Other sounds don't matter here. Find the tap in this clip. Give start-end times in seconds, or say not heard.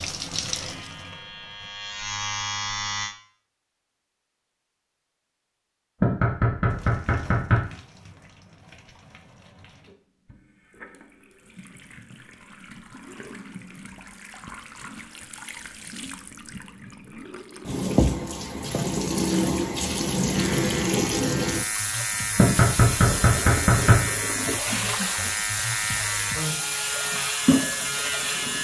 0.0-1.7, 6.7-28.5.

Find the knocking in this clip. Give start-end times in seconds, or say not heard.
6.0-7.6, 22.4-23.9.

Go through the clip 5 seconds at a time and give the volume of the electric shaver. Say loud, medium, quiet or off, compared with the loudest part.
loud, off, off, off, loud, loud.